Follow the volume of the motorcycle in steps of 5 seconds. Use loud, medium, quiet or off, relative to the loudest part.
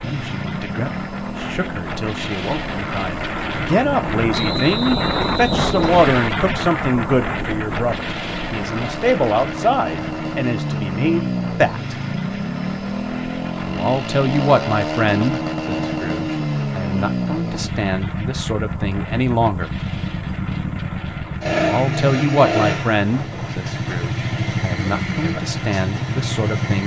medium, medium, loud, loud, loud, loud.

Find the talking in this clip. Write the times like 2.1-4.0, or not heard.
0.0-11.9, 13.7-19.8, 21.6-26.8.